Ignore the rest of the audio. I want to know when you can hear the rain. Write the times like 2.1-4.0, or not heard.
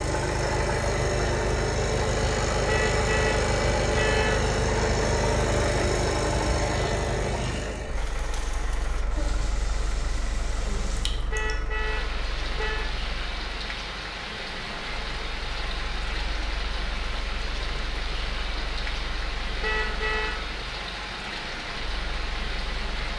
8.0-23.1.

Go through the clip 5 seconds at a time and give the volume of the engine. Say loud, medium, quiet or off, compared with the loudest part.
loud, loud, quiet, quiet, quiet.